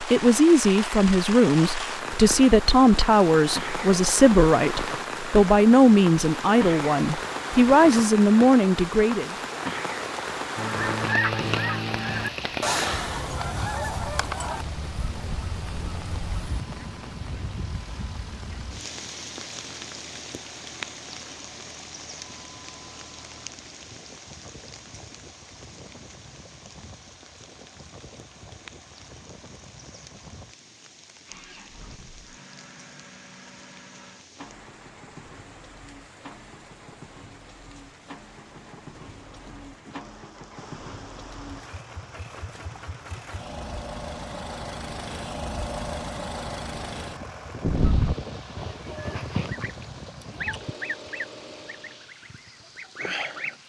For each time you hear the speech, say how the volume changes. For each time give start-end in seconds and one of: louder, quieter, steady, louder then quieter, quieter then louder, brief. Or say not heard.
0.0-9.3 steady.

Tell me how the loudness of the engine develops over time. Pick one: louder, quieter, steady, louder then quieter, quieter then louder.
louder.